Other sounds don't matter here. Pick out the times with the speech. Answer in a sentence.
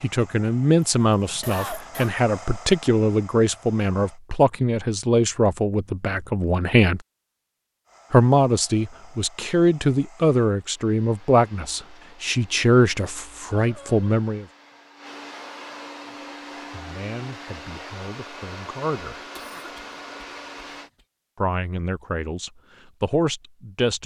You can hear the speech from 0.0 to 7.0 s, from 8.1 to 14.4 s, from 16.1 to 19.2 s and from 21.4 to 24.0 s.